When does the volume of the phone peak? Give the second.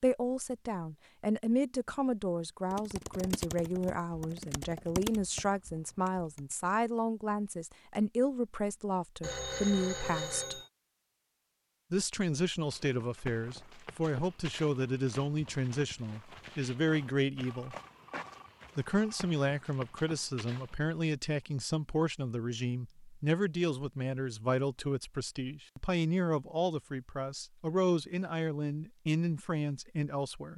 10 s.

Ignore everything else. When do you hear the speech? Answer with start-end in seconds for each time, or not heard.
0.0-10.6, 11.9-17.8, 18.8-30.5.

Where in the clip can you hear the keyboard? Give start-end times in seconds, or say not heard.
2.7-6.4.